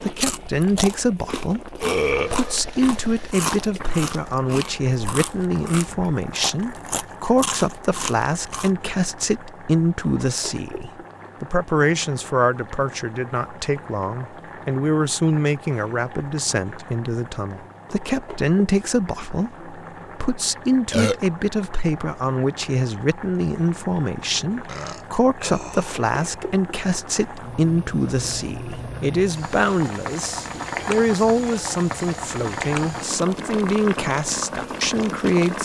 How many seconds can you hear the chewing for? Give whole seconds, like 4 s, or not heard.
9 s.